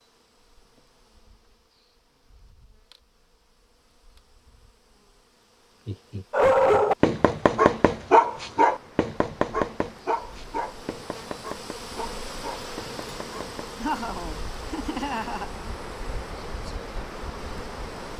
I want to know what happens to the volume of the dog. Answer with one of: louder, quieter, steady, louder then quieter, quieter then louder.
quieter.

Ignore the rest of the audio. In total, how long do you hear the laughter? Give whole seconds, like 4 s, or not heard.
3 s.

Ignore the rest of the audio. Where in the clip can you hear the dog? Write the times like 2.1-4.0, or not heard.
6.3-13.6.